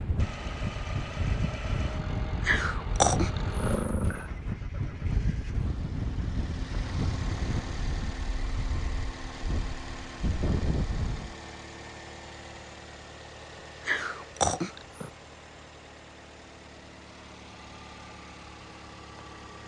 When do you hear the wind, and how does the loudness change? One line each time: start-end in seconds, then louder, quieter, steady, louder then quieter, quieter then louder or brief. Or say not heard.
0.0-11.3 steady.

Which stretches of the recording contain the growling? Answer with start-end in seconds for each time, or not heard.
2.4-4.3, 13.8-15.1.